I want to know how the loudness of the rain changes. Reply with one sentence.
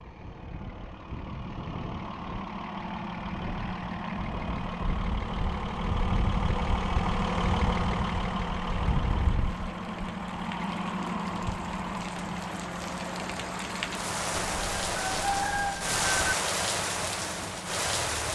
The loudness of the rain goes up.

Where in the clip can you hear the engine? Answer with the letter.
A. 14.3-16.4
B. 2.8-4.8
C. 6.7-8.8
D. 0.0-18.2
D.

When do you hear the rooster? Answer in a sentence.
The rooster can be heard from 14.3 to 16.4 s.